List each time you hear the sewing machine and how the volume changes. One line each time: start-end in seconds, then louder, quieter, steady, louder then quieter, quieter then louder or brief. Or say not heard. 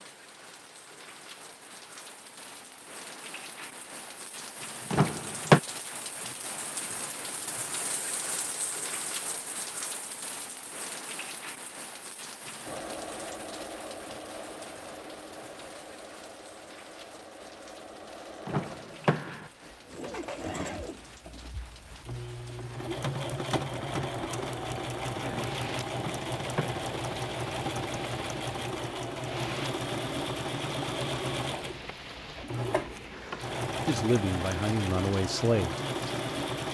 12.7-36.7 louder.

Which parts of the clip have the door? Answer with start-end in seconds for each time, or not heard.
4.9-5.6, 18.4-19.5, 25.9-26.9.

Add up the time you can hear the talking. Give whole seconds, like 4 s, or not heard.
2 s.